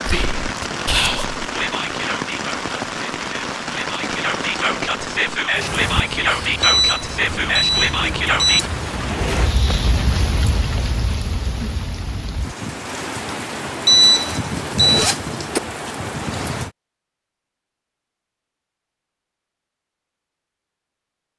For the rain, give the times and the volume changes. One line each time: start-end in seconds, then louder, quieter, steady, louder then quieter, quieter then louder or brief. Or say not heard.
0.0-16.7 steady.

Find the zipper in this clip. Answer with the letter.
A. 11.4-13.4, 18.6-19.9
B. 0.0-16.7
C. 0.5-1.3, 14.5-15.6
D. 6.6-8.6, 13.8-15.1
C.